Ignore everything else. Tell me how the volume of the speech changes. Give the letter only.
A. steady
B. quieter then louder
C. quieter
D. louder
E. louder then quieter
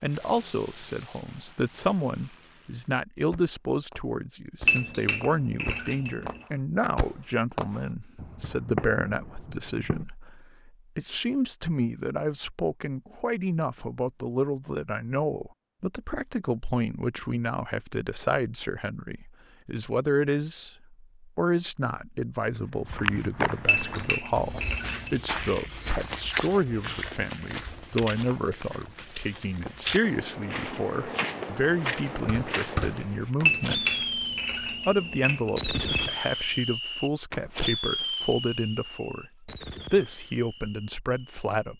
A.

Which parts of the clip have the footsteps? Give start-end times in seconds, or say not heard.
22.8-33.4.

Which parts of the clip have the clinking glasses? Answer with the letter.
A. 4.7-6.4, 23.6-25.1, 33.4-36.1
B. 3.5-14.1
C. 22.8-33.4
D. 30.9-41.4
A.